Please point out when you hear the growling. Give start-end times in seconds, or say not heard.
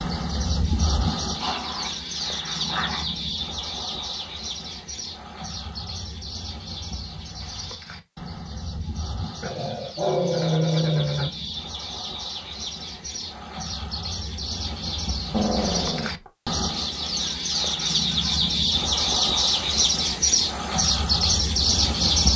1.4-3.0, 9.4-11.3, 15.3-16.3.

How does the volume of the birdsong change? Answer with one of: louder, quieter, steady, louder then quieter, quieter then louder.
quieter then louder.